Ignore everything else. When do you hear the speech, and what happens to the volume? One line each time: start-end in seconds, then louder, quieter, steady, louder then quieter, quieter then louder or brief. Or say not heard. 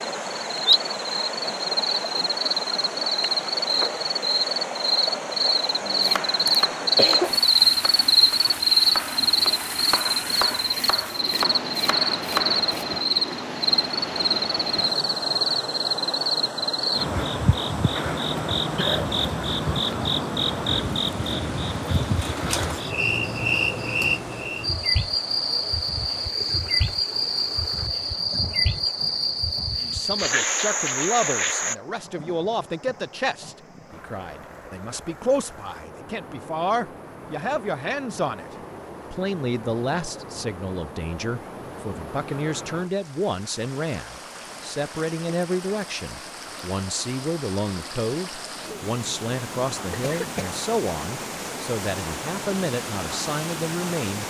29.8-54.2 steady.